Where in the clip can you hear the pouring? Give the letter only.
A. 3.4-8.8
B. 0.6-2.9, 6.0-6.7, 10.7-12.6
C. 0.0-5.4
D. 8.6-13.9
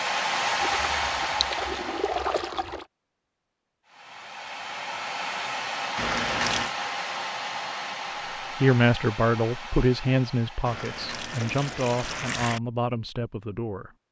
B.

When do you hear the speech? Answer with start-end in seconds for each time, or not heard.
8.6-13.9.